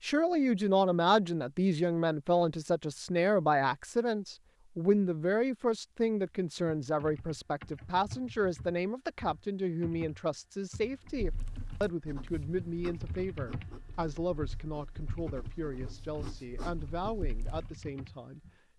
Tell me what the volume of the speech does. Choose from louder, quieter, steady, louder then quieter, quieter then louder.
quieter.